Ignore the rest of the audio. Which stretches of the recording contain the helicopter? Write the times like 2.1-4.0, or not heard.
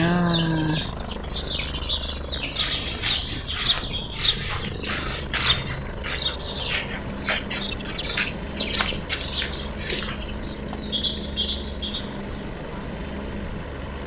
0.0-14.0.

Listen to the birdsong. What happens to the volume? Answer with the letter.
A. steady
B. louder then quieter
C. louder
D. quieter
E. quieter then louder
A.